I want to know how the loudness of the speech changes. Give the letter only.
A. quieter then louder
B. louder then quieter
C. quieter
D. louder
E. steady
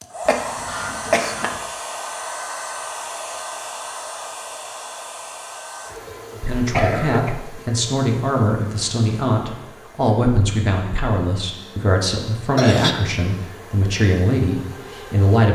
E.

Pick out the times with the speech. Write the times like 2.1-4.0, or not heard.
6.3-15.5.